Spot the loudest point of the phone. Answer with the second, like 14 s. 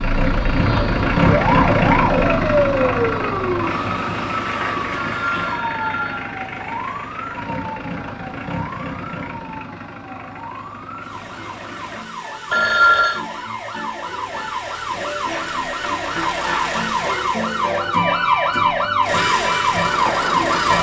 13 s.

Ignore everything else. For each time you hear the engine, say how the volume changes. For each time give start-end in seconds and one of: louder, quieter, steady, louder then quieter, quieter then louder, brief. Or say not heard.
0.0-12.1 quieter.